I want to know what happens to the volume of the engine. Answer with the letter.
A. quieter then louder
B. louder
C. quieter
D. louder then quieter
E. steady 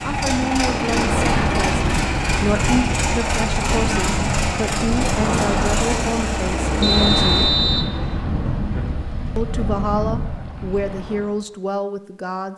E.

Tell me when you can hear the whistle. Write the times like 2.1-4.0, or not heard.
6.8-8.0.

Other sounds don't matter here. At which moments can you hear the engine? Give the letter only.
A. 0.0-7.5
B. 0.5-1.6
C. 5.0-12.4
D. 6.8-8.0
A.